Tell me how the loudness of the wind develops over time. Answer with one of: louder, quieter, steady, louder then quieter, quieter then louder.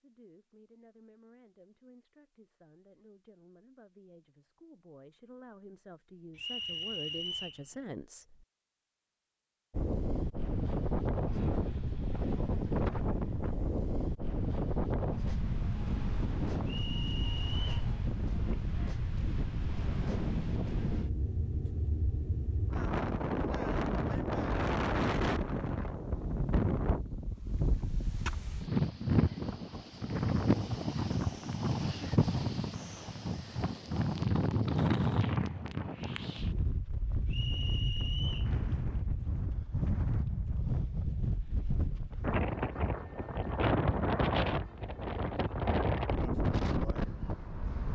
steady.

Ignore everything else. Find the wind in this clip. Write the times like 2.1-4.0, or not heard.
9.7-47.9.